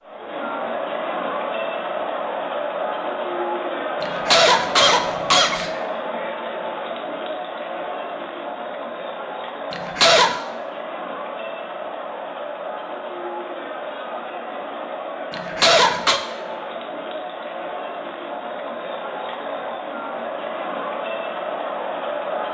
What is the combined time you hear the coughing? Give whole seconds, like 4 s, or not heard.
3 s.